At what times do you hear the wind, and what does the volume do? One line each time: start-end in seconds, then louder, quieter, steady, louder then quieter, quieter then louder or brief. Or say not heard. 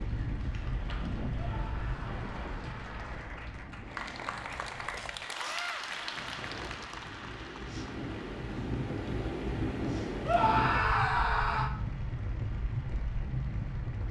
0.0-14.0 quieter then louder.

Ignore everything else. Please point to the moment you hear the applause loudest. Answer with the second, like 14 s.
6 s.